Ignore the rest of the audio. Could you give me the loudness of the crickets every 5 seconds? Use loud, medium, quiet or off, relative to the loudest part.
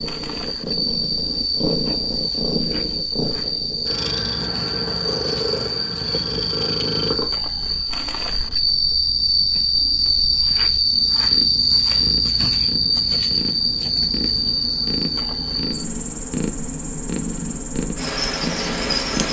medium, loud, loud, medium.